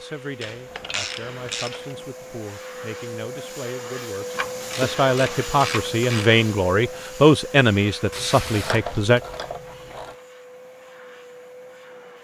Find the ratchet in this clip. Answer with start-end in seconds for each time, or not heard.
0.4-1.8, 4.3-6.3, 8.6-10.2.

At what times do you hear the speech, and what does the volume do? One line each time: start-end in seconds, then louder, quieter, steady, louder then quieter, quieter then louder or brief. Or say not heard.
0.0-9.2 louder.